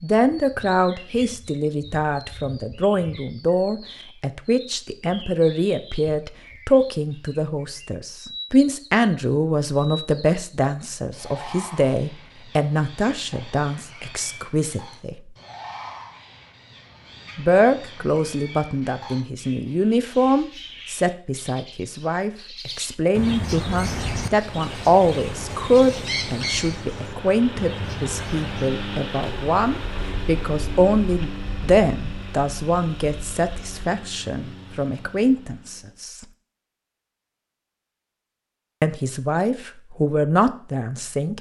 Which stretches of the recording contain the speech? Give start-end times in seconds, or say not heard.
0.0-15.2, 17.4-36.2, 38.8-41.3.